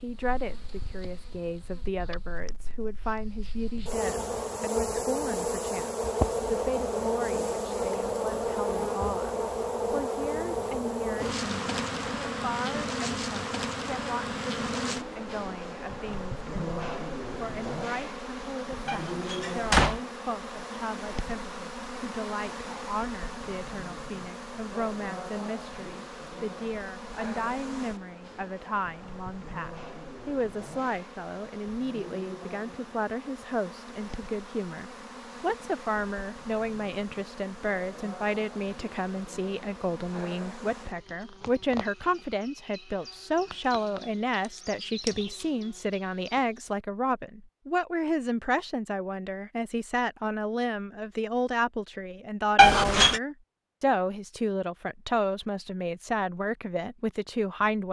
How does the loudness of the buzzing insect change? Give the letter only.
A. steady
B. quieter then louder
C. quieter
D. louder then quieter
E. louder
C.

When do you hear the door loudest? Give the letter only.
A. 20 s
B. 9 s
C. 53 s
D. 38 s
C.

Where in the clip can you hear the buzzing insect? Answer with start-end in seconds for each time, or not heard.
0.0-46.8.